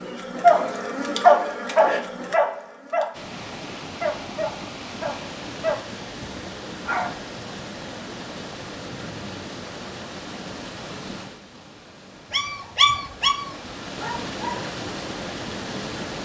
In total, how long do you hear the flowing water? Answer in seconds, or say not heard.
13 s.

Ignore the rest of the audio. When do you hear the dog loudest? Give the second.
1 s.